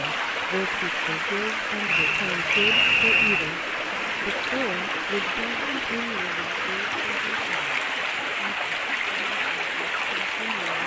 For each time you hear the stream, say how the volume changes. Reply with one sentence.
The stream can be heard from 0.0 to 10.8 s, at a steady volume.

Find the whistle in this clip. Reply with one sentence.
You can hear the whistle from 1.9 to 3.5 s.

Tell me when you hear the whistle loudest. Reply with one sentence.
The loudest moment of the whistle is at 3 seconds.